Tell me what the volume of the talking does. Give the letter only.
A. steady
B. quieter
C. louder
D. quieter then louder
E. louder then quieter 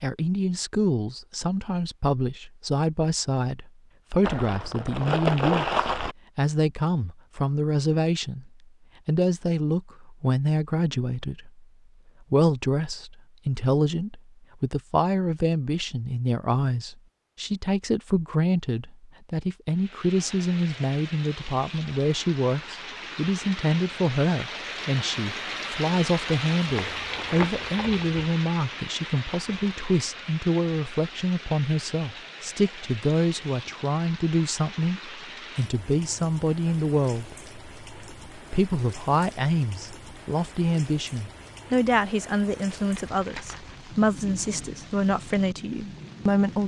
A.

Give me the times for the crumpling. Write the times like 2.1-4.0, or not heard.
4.2-6.2, 26.6-28.2, 42.8-43.8.